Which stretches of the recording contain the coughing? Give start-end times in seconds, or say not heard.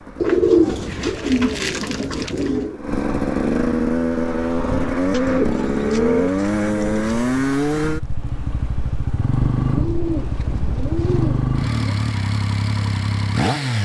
not heard.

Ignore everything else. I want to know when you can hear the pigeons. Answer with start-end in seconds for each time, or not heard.
0.2-2.8, 5.1-7.2, 9.4-12.0.